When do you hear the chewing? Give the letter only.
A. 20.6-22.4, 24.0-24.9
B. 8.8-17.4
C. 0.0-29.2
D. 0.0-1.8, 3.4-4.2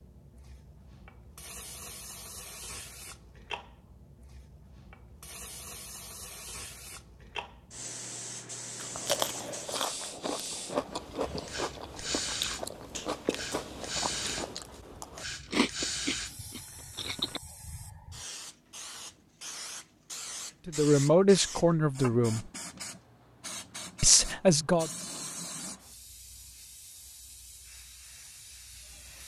B.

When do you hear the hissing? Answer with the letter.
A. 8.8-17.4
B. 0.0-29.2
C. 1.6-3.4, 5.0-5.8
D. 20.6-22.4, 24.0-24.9
B.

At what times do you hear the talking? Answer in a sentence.
The talking can be heard from 20.6 to 22.4 s and from 24.0 to 24.9 s.